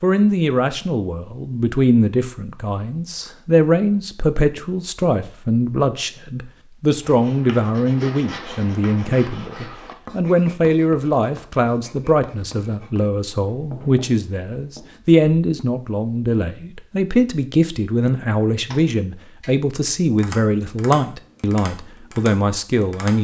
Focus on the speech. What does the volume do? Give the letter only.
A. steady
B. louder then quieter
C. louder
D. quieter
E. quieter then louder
A.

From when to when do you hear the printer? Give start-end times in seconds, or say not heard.
not heard.